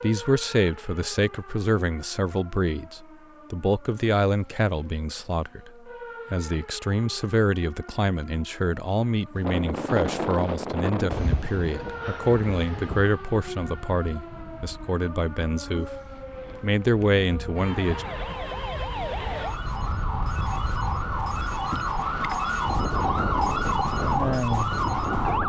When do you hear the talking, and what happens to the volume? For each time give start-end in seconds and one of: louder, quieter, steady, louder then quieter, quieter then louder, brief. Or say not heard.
0.0-16.0 steady
16.6-18.1 brief.